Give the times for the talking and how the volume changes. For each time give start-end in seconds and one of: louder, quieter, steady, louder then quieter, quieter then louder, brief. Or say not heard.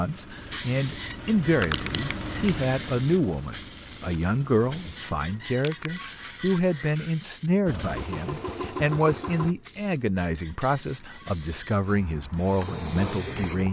0.0-13.6 steady.